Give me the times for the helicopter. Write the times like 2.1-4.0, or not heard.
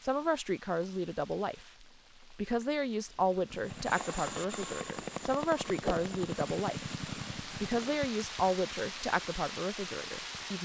3.5-8.0.